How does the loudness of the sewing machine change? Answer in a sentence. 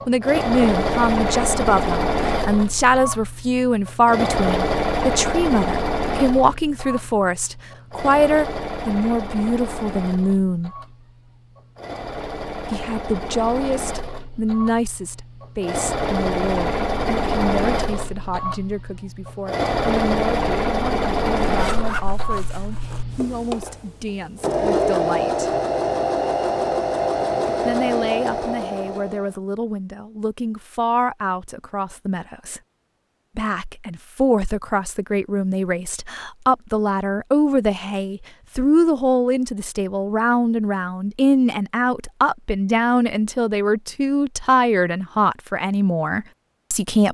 The loudness of the sewing machine goes down, then up.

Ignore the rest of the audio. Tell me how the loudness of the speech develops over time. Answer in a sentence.
The loudness of the speech goes down, then up.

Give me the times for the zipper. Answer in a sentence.
You can hear the zipper from 21.4 to 23.1 s.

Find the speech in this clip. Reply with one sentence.
The speech can be heard from 0.1 to 10.7 s, from 12.7 to 25.6 s, from 27.6 to 32.6 s and from 33.4 to 47.0 s.